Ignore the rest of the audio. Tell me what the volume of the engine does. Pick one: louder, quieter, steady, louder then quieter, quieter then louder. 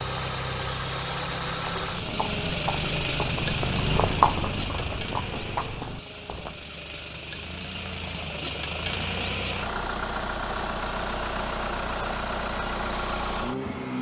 quieter then louder.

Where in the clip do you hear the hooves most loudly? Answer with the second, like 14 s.
4 s.